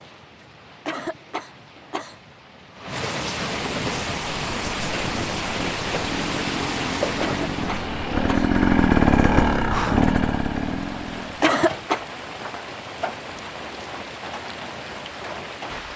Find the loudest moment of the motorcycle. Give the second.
9 s.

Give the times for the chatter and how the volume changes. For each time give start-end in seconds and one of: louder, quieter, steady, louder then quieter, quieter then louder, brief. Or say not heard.
not heard.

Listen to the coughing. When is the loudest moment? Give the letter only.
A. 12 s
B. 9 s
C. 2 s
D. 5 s
A.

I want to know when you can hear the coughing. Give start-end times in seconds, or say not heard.
0.8-2.2, 7.2-8.6, 11.4-12.0.